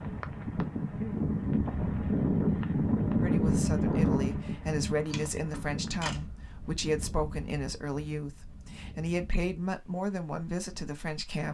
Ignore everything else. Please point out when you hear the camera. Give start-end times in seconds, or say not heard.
5.1-6.2.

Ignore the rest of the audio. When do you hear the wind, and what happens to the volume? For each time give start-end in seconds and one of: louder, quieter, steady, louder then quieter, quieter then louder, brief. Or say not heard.
0.0-11.4 quieter.